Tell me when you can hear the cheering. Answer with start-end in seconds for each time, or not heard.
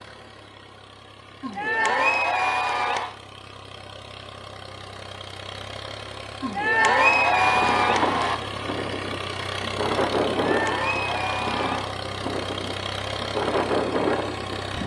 1.4-3.1, 6.4-8.3, 10.4-12.0.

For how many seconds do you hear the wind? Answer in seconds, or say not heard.
8 s.